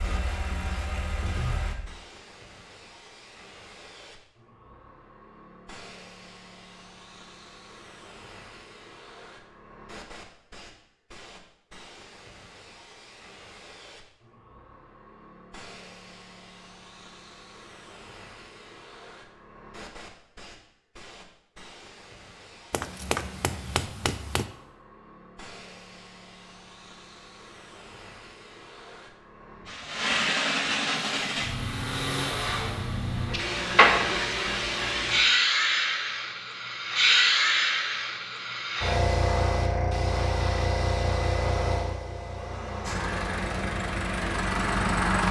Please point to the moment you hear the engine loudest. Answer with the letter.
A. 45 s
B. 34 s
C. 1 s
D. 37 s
A.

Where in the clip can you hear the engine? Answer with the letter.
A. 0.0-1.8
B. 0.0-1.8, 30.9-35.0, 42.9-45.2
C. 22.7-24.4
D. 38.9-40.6
B.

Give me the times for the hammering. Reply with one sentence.
You can hear the hammering from 22.7 to 24.4 s.